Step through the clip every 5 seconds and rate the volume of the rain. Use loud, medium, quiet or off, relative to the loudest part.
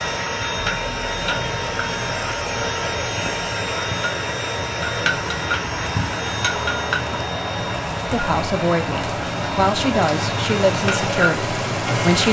medium, loud, loud.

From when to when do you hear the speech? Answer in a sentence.
The speech can be heard from 8.1 to 12.2 s.